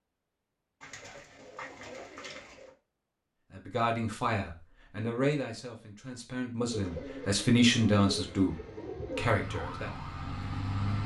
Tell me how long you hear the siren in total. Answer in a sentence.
The siren can be heard for 2 seconds in total.